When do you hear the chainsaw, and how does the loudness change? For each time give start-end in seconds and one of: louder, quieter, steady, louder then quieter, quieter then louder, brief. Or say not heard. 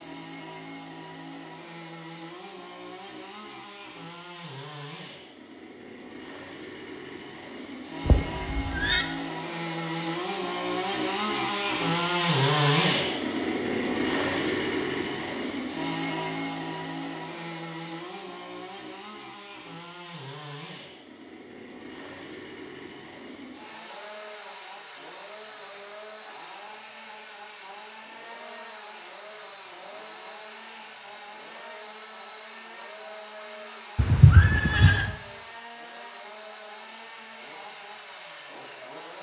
0.0-39.1 louder then quieter.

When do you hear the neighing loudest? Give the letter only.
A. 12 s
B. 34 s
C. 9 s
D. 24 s
B.